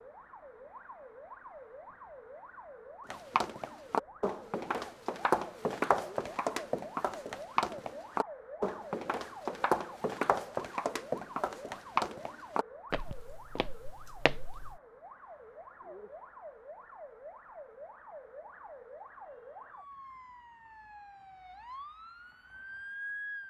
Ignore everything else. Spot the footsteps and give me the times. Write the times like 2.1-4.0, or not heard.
3.1-14.8.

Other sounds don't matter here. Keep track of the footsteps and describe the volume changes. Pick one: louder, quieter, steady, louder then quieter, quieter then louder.
quieter.